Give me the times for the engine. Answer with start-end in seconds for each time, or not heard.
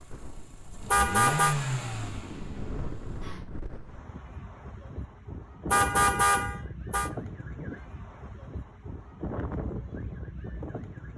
0.0-3.5.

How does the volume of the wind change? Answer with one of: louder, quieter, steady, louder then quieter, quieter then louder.
louder.